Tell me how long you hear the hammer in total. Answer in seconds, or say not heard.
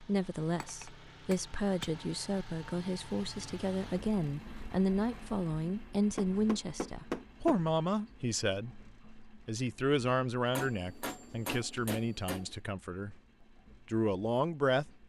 5 s.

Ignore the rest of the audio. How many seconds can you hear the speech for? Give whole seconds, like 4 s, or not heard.
14 s.